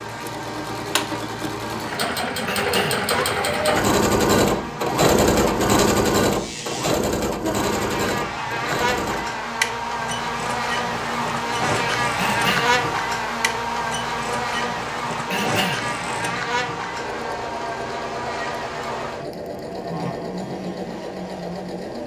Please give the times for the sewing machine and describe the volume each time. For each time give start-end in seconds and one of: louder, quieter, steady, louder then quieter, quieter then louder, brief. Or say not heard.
0.0-22.0 quieter.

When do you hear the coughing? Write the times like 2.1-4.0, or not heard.
2.5-3.0, 12.2-12.7, 15.3-15.8.